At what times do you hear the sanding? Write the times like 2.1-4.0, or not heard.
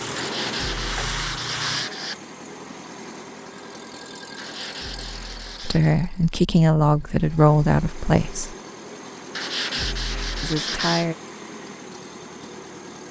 0.1-2.1, 4.3-5.9, 9.3-11.1.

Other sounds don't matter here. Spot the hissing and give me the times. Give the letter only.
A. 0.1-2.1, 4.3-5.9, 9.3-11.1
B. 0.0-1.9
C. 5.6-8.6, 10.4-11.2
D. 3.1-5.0
B.